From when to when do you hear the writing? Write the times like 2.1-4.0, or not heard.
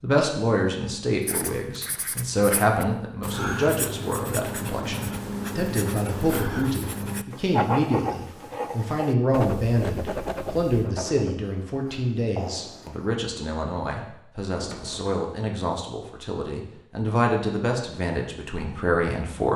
1.2-13.2.